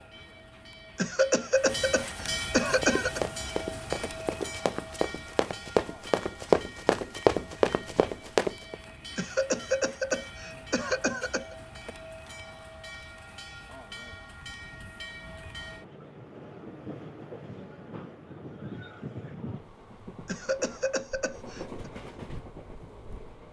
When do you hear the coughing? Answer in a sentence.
The coughing can be heard from 0.9 to 3.2 s, from 9.2 to 11.6 s and from 20.2 to 21.9 s.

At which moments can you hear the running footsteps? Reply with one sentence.
You can hear the running footsteps from 2.6 to 8.8 s.